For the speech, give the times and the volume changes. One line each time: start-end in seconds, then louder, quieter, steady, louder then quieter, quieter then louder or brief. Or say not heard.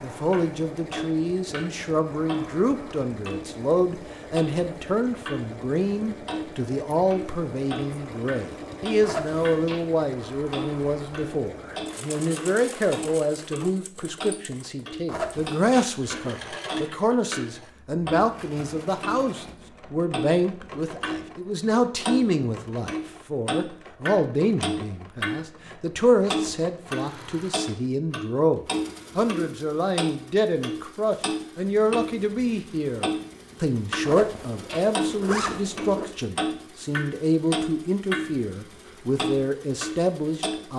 0.0-40.7 steady.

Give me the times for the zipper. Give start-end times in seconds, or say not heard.
9.0-9.9, 15.1-16.4, 34.0-36.0.